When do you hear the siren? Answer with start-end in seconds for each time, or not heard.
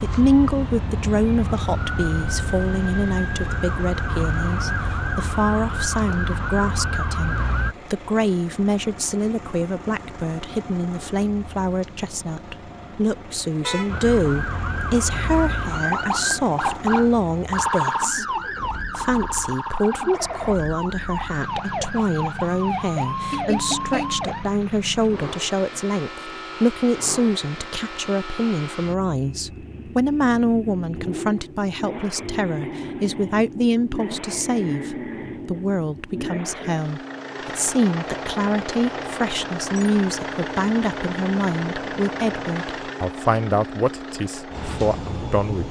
0.0-7.8, 13.8-24.4.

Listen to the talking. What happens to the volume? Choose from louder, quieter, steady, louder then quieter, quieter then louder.
steady.